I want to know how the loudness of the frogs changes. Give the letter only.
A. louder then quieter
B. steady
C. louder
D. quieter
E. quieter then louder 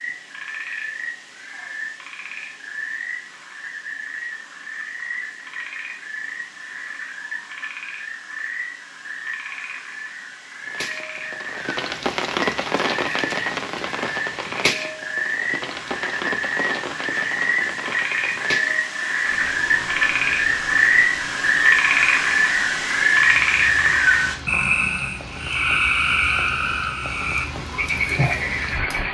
C.